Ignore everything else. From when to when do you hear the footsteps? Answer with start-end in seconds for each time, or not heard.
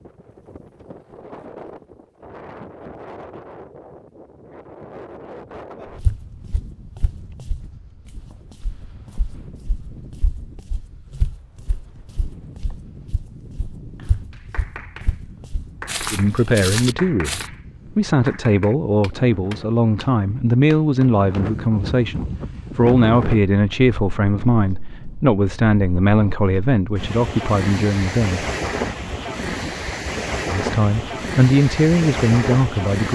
6.0-17.5.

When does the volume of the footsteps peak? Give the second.
17 s.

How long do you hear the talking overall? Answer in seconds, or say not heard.
15 s.